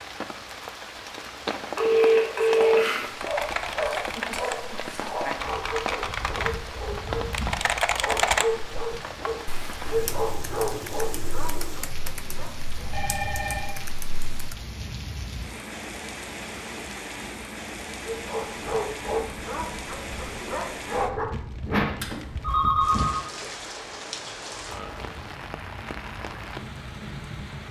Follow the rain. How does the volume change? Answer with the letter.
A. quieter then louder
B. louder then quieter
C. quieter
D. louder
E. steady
E.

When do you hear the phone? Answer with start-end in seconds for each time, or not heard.
1.8-3.1, 12.9-13.8, 22.0-23.2.